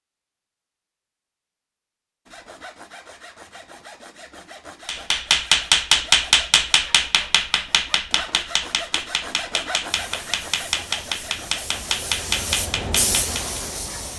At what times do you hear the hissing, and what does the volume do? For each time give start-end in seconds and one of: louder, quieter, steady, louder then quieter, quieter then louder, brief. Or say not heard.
9.8-14.1 louder.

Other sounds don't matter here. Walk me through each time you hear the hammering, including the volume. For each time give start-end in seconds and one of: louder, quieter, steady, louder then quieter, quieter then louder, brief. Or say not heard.
4.8-13.6 quieter.